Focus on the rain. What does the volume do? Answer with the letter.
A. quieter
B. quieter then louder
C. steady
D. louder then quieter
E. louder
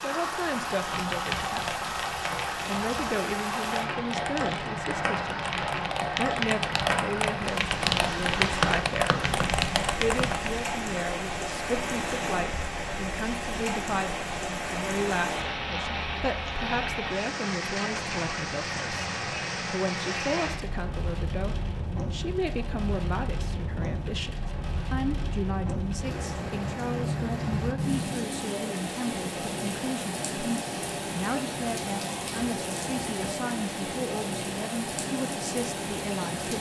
C.